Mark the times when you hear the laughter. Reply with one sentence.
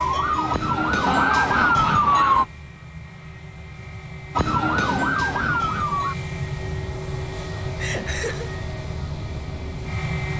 The laughter can be heard from 1.1 to 2.5 s and from 7.8 to 8.5 s.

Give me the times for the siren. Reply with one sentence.
The siren can be heard from 0.0 to 2.5 s and from 4.3 to 6.2 s.